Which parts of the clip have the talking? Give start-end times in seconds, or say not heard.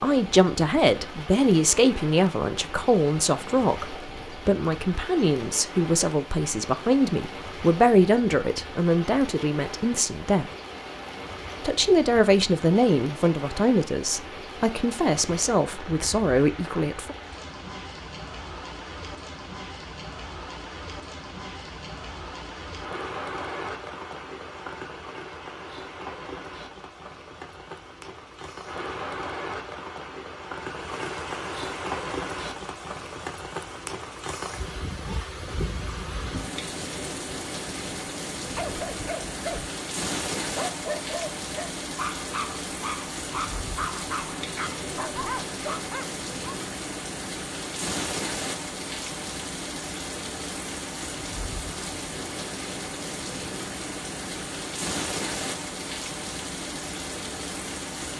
0.0-10.5, 11.6-17.1.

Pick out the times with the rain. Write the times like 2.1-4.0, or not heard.
0.0-58.1.